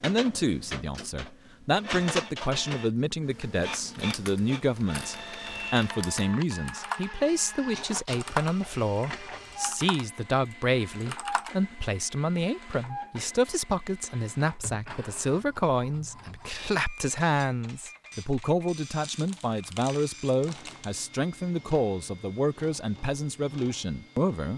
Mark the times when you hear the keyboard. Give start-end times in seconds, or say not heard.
3.3-7.1, 8.1-8.6, 9.5-10.1, 11.0-11.5.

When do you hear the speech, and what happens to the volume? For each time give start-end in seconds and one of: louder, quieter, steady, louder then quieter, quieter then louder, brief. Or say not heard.
0.0-24.5 steady.